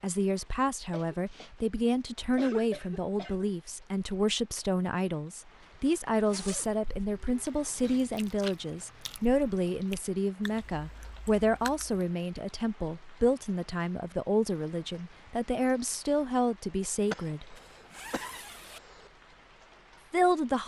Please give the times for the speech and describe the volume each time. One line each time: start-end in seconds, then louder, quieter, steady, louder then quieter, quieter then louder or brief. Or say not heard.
0.0-17.6 steady
20.1-20.6 brief.